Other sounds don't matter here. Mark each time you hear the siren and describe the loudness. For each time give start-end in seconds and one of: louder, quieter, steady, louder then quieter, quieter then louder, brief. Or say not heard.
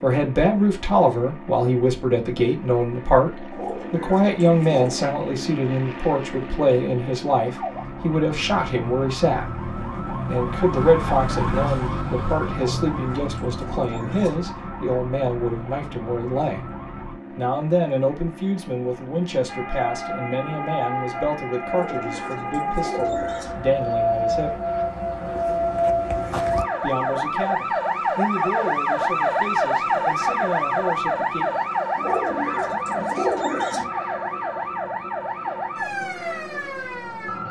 7.4-17.1 louder then quieter
19.4-37.4 louder then quieter.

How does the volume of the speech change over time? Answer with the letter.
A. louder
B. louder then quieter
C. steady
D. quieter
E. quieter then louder
D.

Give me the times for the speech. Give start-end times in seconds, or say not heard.
0.0-16.6, 17.4-24.6, 26.8-31.6.